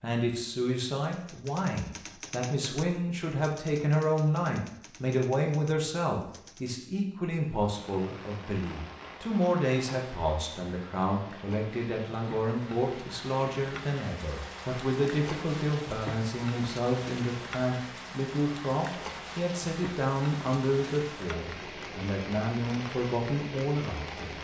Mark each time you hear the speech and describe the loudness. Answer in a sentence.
The speech can be heard from 0.0 to 24.3 s, at a steady volume.